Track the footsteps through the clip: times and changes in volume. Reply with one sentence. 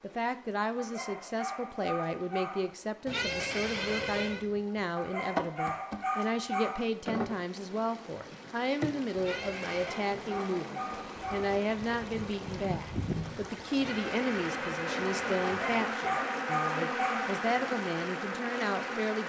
The footsteps can't be heard in this clip.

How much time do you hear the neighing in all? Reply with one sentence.
You can hear the neighing for 4 seconds altogether.